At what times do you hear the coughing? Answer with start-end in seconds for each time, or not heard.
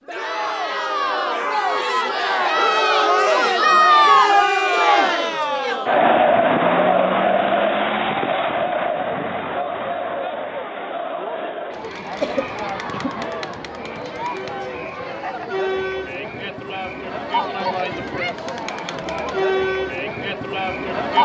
12.2-13.2.